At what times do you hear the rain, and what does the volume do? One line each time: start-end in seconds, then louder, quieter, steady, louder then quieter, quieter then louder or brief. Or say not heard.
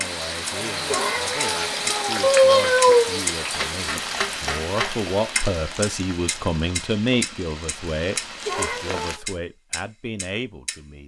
0.0-9.2 quieter.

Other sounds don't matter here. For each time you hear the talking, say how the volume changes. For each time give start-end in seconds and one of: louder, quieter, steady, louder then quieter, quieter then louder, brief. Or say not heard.
0.0-11.0 louder then quieter.